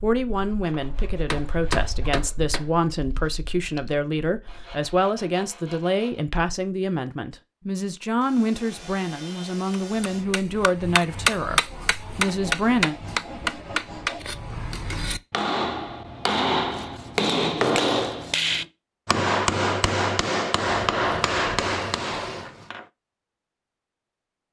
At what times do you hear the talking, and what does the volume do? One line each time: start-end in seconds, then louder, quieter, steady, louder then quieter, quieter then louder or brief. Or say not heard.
0.0-12.9 steady.